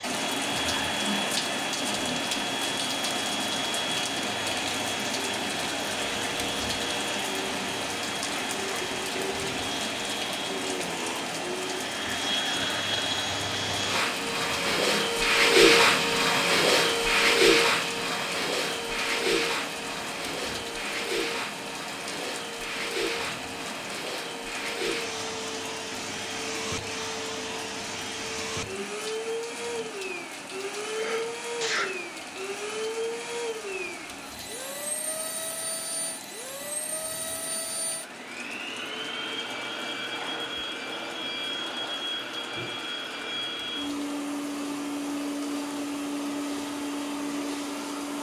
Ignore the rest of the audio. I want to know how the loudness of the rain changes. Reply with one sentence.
The loudness of the rain goes down.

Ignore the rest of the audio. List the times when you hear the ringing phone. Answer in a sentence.
You can't hear the ringing phone here.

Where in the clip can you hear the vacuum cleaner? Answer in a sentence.
The vacuum cleaner can be heard from 0.0 to 48.1 s.